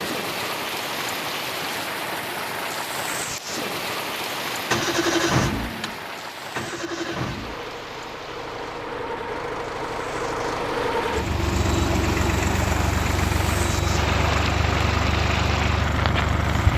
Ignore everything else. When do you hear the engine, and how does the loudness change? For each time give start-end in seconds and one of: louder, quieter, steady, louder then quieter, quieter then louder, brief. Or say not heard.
4.7-16.7 quieter then louder.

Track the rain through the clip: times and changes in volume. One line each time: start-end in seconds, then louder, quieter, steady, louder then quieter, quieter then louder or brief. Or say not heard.
0.0-16.7 quieter then louder.